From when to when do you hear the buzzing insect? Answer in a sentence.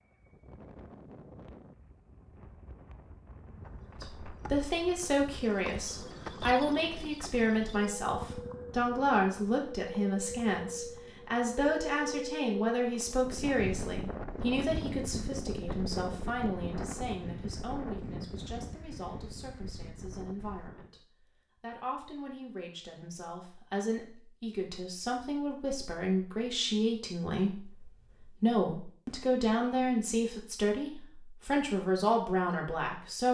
The buzzing insect can't be heard in this clip.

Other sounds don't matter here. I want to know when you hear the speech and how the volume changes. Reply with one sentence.
The speech can be heard from 4.0 to 33.3 s, getting quieter then louder.